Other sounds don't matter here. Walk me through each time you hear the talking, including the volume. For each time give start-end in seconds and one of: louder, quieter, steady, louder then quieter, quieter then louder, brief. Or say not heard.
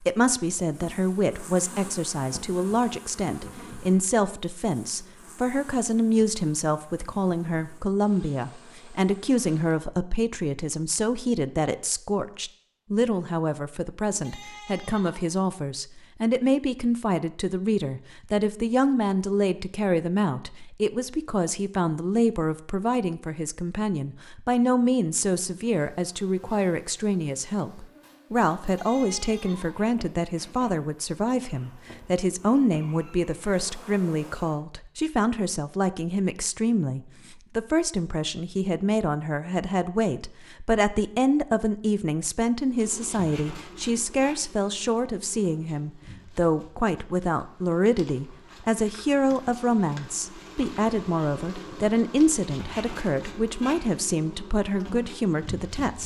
0.0-56.0 steady.